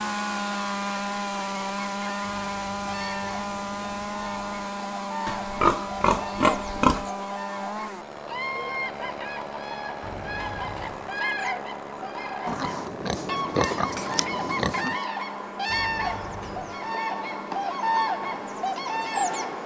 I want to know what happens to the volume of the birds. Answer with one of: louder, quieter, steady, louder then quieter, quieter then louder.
louder.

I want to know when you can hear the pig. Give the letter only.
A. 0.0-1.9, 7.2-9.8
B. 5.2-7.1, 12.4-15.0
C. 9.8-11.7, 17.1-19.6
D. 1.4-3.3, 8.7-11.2
B.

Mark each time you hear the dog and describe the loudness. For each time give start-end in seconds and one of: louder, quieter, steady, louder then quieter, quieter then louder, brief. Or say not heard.
not heard.